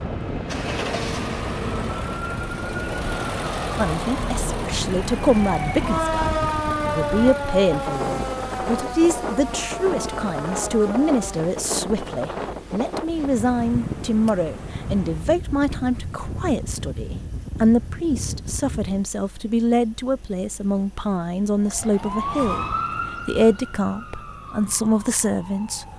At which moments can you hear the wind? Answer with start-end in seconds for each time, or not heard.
0.0-19.1.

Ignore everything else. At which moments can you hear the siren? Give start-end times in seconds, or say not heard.
0.0-11.5, 21.6-25.9.